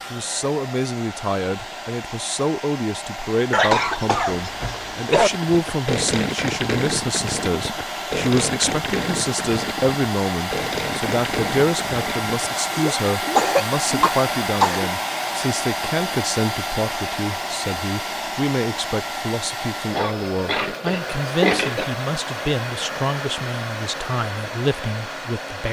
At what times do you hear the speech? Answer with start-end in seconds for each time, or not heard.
0.0-25.6.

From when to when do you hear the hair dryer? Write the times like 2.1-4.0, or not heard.
0.0-25.6.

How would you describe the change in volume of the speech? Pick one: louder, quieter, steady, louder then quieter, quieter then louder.
steady.